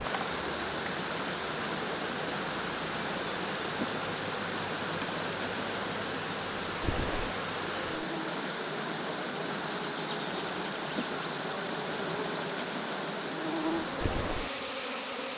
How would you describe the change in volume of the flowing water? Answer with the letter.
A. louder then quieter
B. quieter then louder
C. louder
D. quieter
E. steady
E.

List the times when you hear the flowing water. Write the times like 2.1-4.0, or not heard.
0.0-15.3.